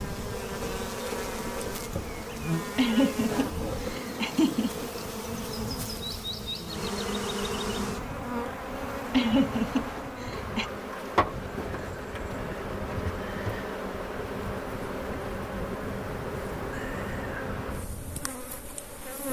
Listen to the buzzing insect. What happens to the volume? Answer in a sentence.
The volume of the buzzing insect stays about the same.